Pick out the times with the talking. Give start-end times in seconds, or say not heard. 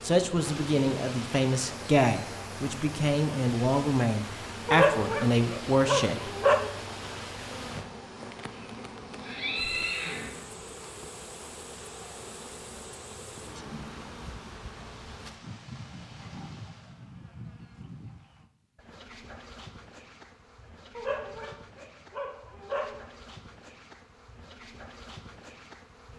0.0-6.3.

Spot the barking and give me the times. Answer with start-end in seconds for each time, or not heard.
4.7-6.7, 20.9-22.9.